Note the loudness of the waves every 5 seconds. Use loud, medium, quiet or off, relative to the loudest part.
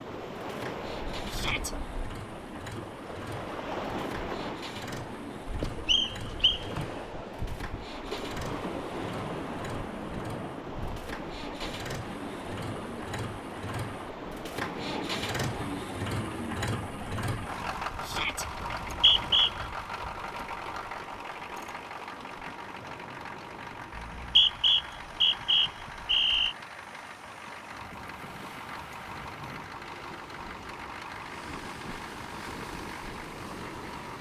loud, loud, loud, medium, medium, medium, medium.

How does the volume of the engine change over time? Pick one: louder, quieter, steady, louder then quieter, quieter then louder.
louder then quieter.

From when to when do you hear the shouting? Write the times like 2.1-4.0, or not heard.
1.3-1.8, 18.0-18.4.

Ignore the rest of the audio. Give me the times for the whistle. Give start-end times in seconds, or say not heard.
5.8-6.7, 18.6-19.6, 23.9-26.6.